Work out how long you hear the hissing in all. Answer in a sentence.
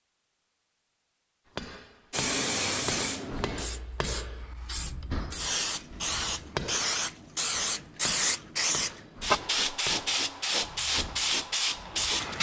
You can hear the hissing for 10 seconds altogether.